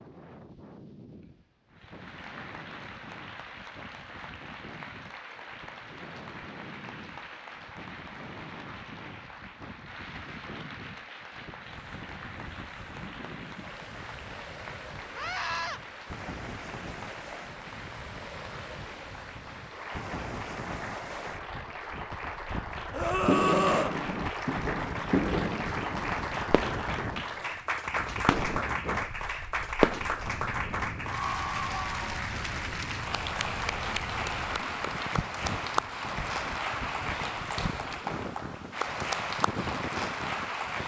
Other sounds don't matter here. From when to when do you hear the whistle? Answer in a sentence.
You can't hear the whistle here.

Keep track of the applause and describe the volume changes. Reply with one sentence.
The loudness of the applause goes up.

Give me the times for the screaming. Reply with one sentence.
You can hear the screaming from 15.2 to 15.8 s and from 22.9 to 23.9 s.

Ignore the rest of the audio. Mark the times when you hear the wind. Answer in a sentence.
You can hear the wind from 0.0 to 40.8 s.